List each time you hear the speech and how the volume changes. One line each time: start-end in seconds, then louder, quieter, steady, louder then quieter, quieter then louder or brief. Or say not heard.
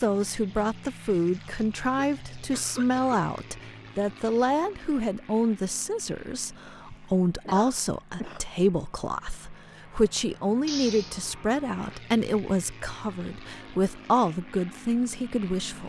0.0-15.8 steady.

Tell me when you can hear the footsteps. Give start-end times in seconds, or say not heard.
not heard.